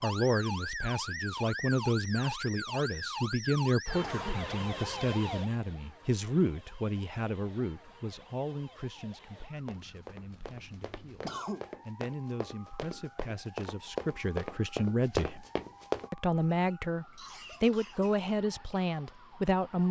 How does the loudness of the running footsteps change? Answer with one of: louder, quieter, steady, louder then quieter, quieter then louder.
louder.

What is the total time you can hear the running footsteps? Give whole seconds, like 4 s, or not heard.
7 s.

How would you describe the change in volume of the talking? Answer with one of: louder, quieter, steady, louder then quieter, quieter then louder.
quieter then louder.